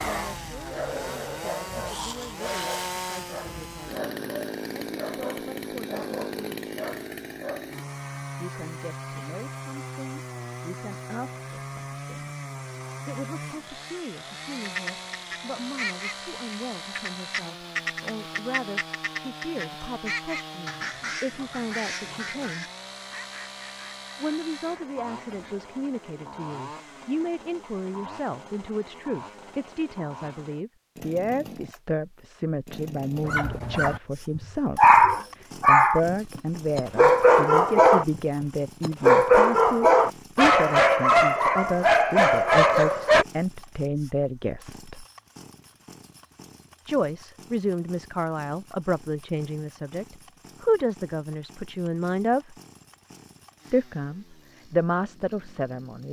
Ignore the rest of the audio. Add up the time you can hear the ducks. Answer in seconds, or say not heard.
11 s.